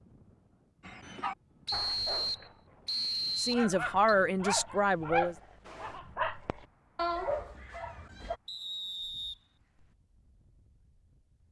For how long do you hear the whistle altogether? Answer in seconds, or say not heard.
4 s.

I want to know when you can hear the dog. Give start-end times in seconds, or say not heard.
0.8-8.3.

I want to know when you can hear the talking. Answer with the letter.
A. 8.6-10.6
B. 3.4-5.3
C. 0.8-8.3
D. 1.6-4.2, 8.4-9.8
B.